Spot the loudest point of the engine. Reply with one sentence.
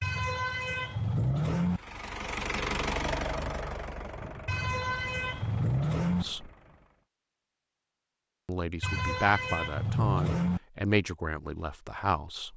The loudest moment of the engine is at 3 seconds.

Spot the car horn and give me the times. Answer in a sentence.
You can hear the car horn from 0.0 to 1.8 s, from 4.5 to 6.2 s and from 8.8 to 10.6 s.